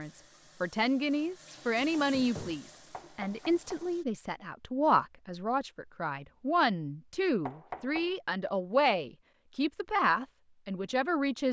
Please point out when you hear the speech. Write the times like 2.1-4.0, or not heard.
0.0-11.4.